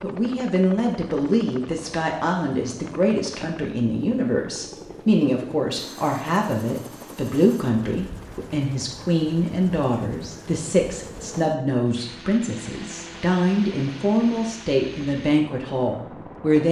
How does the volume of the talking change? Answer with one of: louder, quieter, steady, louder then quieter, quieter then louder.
steady.